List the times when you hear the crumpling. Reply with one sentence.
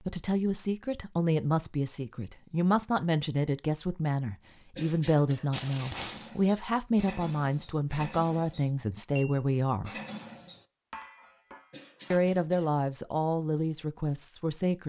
The crumpling can be heard from 5.5 to 6.3 s.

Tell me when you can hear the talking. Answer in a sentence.
You can hear the talking from 0.0 to 9.9 s and from 12.1 to 14.8 s.